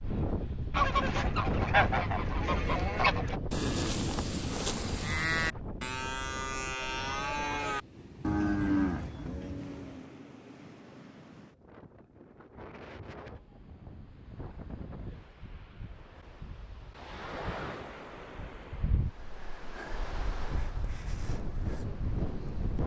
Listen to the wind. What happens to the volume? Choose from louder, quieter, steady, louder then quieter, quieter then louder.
quieter then louder.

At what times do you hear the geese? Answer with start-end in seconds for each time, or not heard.
0.7-3.4.